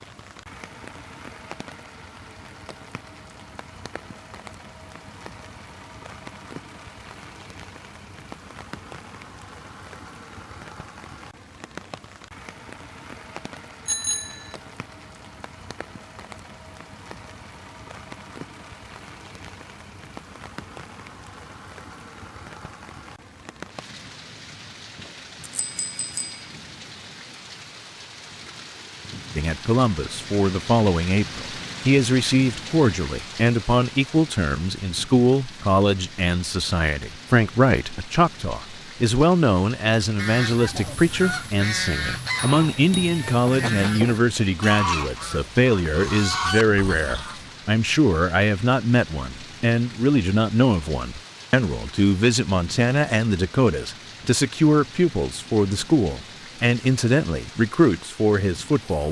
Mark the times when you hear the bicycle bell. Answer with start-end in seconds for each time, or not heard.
13.8-14.6, 25.1-26.4, 42.5-43.2.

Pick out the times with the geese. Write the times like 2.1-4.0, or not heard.
40.0-47.5.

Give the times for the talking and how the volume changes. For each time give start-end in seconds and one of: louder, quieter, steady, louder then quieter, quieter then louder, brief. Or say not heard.
29.4-59.0 steady.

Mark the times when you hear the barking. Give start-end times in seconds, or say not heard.
not heard.